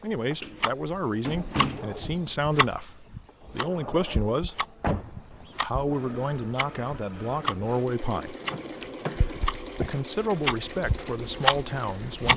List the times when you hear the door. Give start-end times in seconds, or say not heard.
0.4-1.9, 4.8-5.7, 8.4-9.4.